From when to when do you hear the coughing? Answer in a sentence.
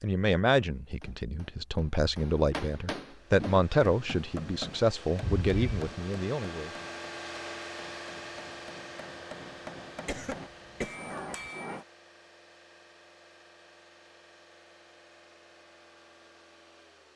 You can hear the coughing from 5.2 to 5.9 s and from 10.1 to 11.5 s.